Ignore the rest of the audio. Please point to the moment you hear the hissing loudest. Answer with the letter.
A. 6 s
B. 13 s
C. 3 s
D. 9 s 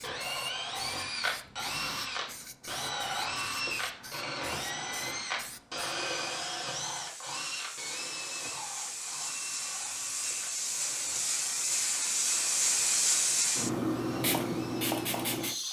B.